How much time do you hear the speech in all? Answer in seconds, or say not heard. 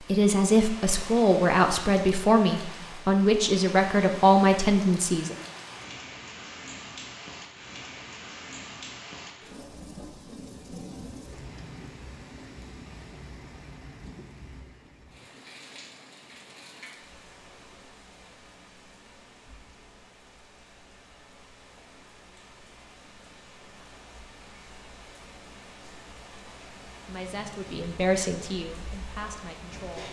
8 s.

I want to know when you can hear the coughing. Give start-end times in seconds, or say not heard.
not heard.